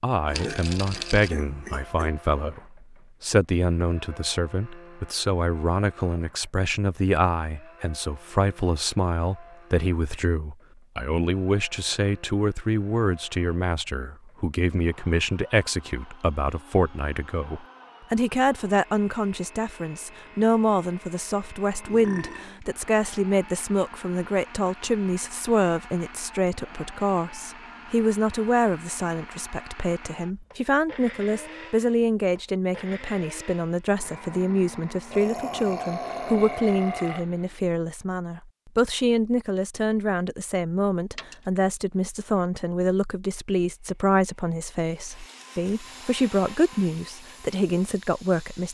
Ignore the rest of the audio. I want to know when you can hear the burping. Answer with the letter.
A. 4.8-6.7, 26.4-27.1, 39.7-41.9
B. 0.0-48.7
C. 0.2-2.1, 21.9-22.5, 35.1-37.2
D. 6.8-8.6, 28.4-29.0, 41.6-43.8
C.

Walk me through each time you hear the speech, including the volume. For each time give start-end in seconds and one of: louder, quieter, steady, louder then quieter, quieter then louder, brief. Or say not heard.
0.0-48.7 steady.